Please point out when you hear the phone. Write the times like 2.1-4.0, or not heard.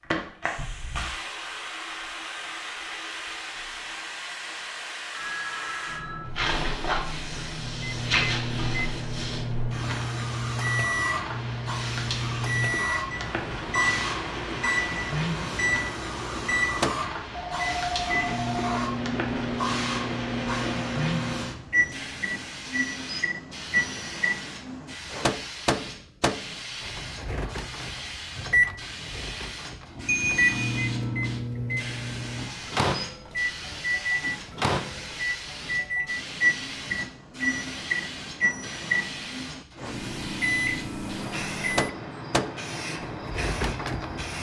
5.1-6.3, 17.3-18.9, 30.1-30.9.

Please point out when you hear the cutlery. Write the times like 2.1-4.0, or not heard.
not heard.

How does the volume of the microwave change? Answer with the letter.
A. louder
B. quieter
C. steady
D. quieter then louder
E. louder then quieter
C.